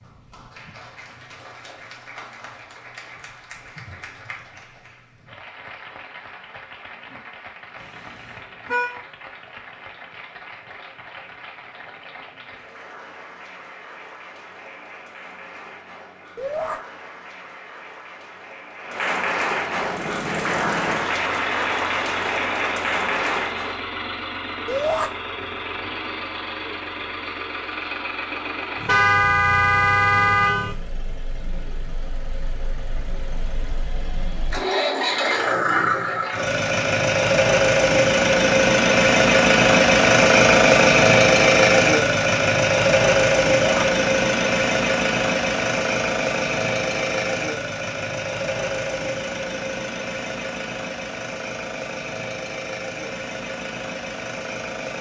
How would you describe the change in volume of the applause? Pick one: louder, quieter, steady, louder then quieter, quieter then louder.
louder.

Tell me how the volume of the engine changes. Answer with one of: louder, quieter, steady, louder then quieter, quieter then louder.
louder then quieter.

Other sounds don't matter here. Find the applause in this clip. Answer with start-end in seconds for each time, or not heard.
0.0-23.9.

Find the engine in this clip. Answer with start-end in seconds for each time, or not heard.
19.7-54.9.